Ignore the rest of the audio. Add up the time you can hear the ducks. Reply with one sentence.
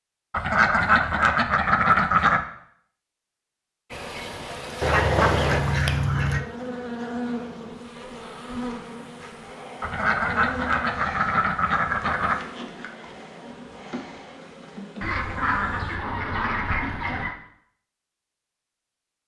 You can hear the ducks for 9 seconds altogether.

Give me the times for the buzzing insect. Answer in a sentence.
You can hear the buzzing insect from 3.9 to 16.0 s.